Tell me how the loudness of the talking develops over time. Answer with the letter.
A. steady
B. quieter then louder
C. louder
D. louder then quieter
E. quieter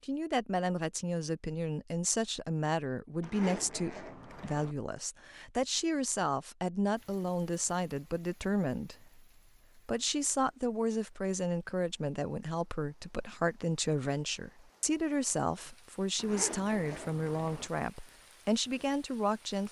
A.